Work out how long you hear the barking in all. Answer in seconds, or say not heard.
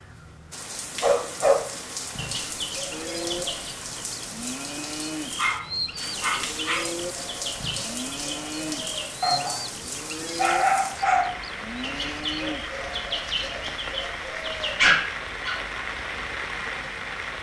4 s.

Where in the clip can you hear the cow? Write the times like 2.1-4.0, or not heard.
2.9-12.7.